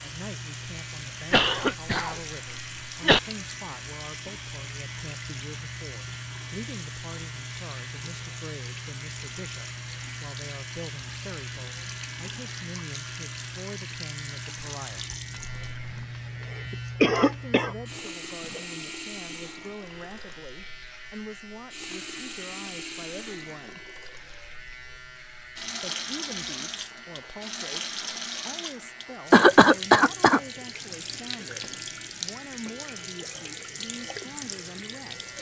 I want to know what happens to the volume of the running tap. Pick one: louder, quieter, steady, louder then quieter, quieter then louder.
steady.